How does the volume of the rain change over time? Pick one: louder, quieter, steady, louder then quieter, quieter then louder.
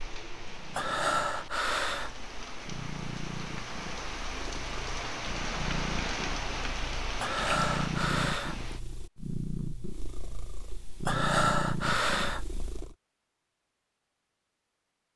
louder.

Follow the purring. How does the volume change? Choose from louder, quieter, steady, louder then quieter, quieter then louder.
louder.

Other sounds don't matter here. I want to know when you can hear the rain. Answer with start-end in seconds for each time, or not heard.
0.0-8.8.